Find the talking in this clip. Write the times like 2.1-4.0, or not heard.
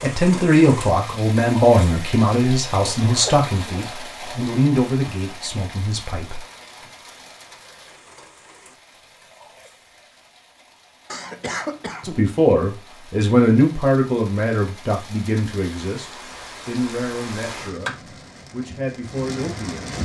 0.0-6.4, 12.0-20.0.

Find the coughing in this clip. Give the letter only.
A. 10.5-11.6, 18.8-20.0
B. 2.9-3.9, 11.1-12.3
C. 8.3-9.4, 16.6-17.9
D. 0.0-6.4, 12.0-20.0
B.